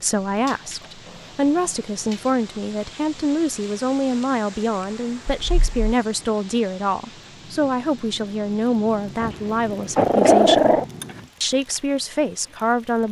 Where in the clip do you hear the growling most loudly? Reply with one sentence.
The volume of the growling peaks at 10 seconds.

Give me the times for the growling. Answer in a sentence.
The growling can be heard from 0.4 to 2.4 s, from 5.3 to 5.9 s and from 9.2 to 10.8 s.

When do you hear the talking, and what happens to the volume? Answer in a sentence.
The talking can be heard from 0.0 to 10.8 s, at a steady volume; and briefly from 11.4 to 13.0 s.